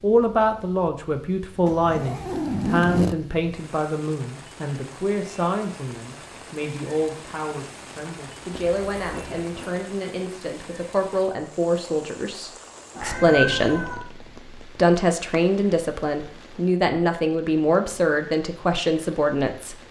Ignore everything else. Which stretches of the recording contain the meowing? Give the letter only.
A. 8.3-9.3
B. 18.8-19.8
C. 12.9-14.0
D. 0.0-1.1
C.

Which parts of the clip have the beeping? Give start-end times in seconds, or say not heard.
not heard.